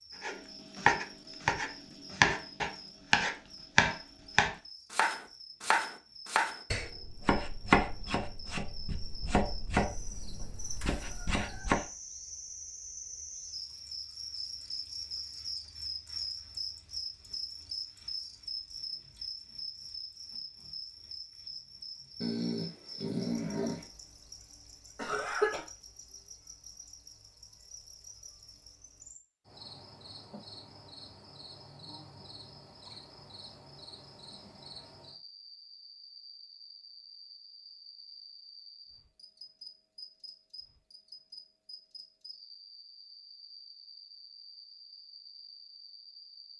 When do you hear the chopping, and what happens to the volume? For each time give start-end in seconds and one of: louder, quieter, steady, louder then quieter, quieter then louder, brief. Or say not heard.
0.2-11.8 quieter.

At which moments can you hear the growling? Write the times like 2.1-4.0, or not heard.
22.2-23.9.